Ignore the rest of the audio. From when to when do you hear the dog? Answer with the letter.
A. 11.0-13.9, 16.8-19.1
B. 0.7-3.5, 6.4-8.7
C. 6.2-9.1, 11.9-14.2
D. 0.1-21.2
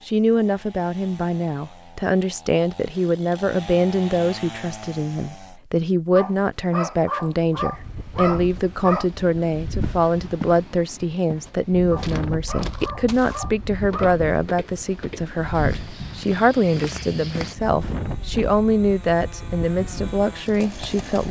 C.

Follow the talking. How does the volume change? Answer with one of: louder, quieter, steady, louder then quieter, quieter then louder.
steady.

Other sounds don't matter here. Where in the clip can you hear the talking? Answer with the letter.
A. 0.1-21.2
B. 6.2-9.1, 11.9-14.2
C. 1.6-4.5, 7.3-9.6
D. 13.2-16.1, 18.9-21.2
A.